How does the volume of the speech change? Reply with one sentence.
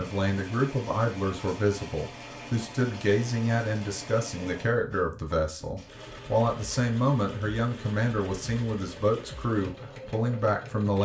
The volume of the speech stays about the same.